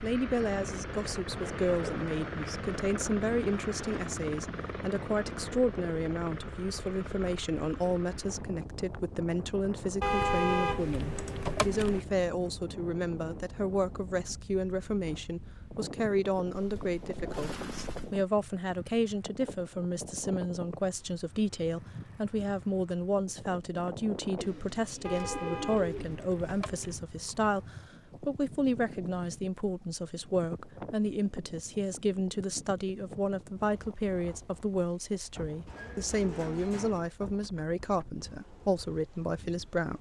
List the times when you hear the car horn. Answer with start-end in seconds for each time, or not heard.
10.0-12.0, 25.1-27.0.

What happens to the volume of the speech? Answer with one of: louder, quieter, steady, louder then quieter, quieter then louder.
steady.